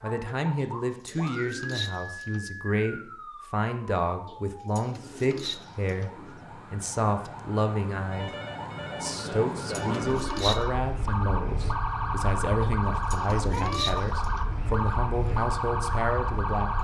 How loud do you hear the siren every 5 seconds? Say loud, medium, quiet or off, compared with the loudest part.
medium, medium, loud, loud.